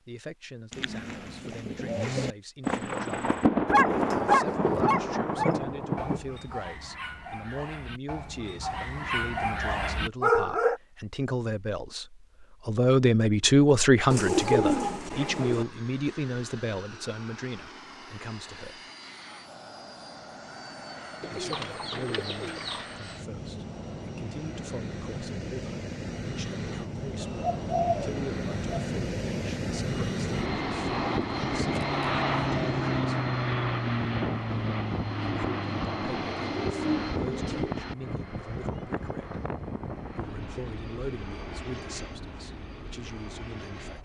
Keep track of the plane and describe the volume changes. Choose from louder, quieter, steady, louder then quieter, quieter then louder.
louder then quieter.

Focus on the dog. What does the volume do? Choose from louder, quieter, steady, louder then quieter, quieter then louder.
quieter then louder.